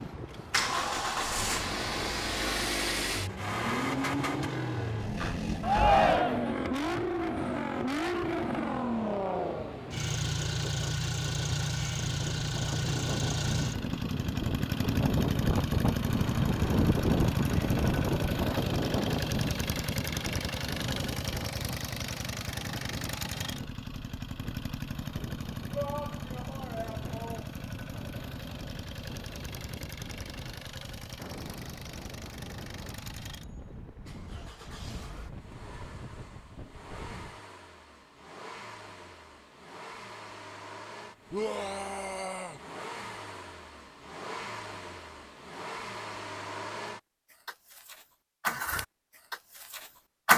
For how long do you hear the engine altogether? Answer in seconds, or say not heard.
50 s.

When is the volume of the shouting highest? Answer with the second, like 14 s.
6 s.